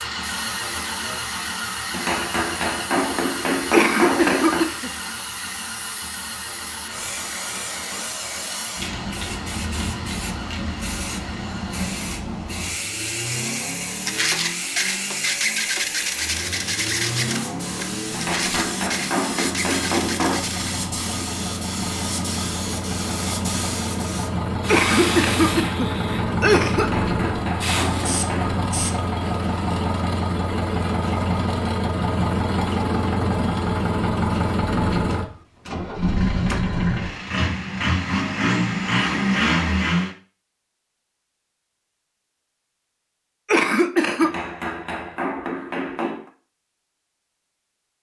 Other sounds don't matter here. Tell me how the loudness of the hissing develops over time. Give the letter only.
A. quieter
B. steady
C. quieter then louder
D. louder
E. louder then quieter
D.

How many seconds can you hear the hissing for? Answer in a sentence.
You can hear the hissing for 29 seconds altogether.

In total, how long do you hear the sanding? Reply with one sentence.
You can hear the sanding for 7 seconds altogether.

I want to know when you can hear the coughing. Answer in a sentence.
You can hear the coughing from 3.7 to 4.9 s, from 24.6 to 26.9 s and from 43.5 to 44.4 s.